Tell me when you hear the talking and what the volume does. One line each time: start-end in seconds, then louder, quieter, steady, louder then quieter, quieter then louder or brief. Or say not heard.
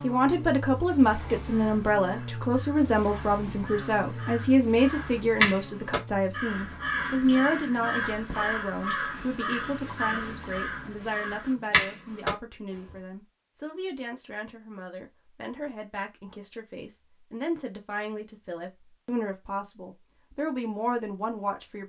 0.0-21.8 quieter then louder.